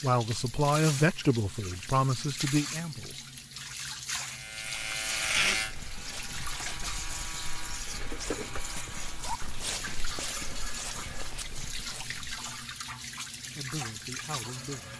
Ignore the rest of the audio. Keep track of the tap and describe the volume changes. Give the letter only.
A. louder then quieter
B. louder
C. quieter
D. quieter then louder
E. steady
E.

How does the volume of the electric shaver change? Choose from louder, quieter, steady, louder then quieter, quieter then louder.
quieter.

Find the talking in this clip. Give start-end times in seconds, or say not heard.
0.0-3.2, 13.4-14.9.